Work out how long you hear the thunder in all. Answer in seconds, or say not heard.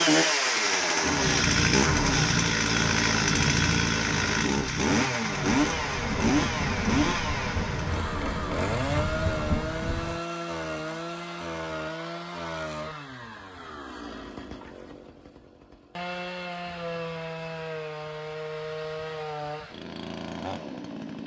5 s.